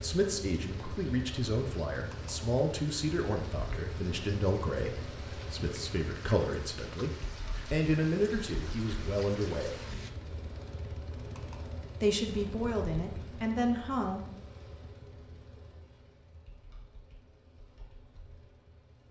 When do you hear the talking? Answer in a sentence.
The talking can be heard from 0.0 to 9.8 s and from 12.0 to 14.2 s.